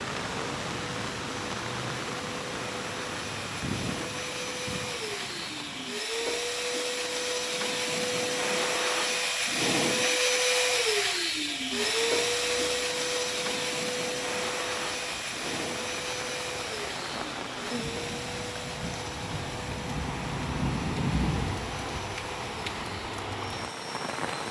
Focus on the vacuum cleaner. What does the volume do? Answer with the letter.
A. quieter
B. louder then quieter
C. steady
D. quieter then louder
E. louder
B.